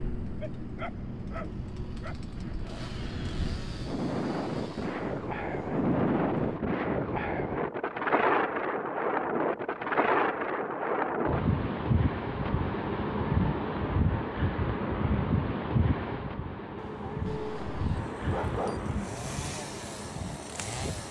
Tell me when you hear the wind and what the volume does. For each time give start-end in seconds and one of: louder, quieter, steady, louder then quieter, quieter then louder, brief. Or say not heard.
0.0-21.0 louder then quieter.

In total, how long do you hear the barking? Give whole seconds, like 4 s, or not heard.
4 s.